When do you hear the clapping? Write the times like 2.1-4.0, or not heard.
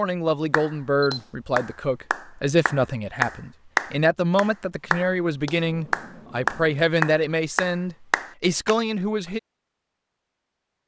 0.5-8.8.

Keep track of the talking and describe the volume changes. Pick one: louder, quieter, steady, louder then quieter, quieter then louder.
steady.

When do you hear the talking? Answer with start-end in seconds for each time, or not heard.
0.0-9.4.